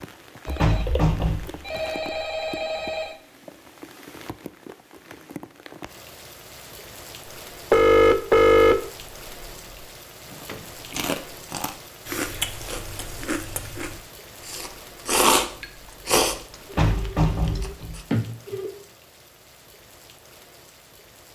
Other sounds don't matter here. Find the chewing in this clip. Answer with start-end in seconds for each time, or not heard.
10.3-18.0.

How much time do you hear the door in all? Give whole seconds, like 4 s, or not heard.
3 s.